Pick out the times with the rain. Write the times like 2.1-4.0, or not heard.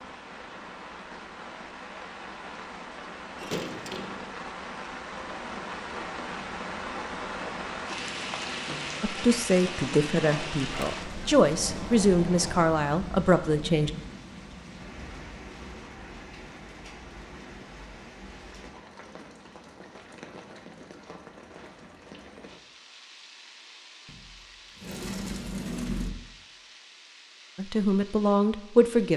0.0-29.1.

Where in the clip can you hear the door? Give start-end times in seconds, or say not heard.
3.4-4.2, 10.3-12.8, 24.1-26.3.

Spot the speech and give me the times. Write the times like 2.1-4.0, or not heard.
9.0-13.9, 27.6-29.1.